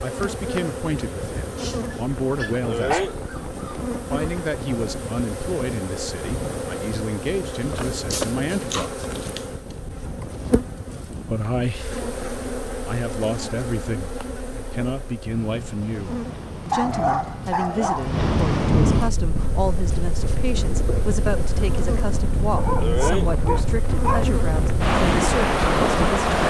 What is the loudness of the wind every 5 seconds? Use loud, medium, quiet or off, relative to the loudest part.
quiet, quiet, quiet, medium, medium, loud.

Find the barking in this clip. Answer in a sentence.
The barking can be heard from 1.6 to 3.6 s, from 8.1 to 9.4 s, from 16.7 to 18.1 s and from 22.6 to 24.4 s.